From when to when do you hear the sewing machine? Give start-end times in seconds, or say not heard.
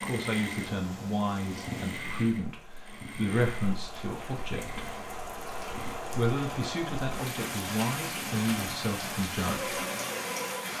0.0-10.7.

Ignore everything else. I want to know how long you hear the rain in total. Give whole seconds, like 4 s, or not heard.
11 s.